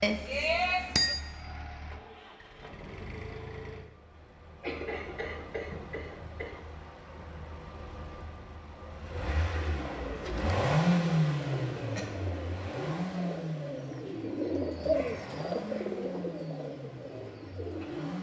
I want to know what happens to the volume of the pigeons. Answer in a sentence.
The loudness of the pigeons goes up, then down.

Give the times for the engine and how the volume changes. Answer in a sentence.
You can hear the engine from 0.0 to 18.1 s, getting louder then quieter.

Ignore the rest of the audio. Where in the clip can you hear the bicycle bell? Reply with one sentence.
The bicycle bell can be heard from 0.0 to 1.1 s.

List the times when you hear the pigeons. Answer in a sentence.
You can hear the pigeons from 9.5 to 18.1 s.